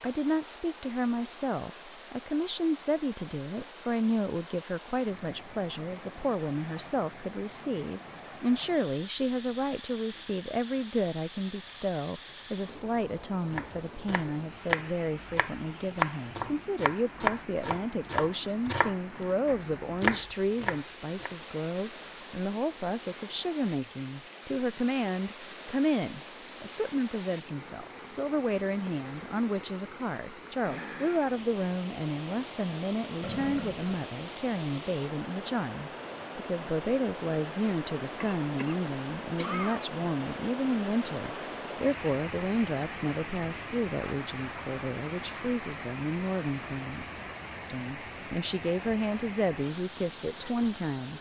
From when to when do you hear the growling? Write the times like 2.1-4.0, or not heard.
33.2-34.0.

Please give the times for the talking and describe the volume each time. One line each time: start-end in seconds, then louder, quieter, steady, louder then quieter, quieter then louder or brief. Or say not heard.
0.0-51.1 steady.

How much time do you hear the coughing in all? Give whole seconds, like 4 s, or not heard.
2 s.